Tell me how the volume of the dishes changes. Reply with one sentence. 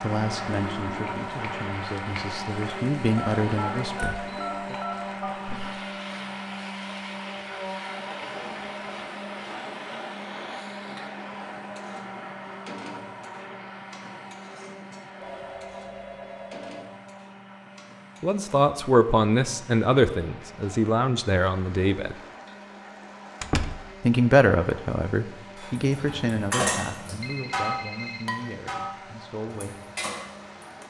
The volume of the dishes goes down.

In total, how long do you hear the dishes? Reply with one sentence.
You can hear the dishes for 5 seconds altogether.